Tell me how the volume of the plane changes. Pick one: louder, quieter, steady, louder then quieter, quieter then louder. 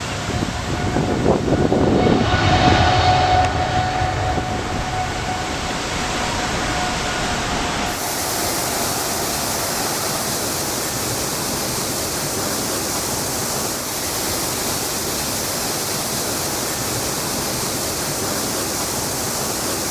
quieter.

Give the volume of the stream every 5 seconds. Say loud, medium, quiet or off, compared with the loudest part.
medium, loud, loud, loud.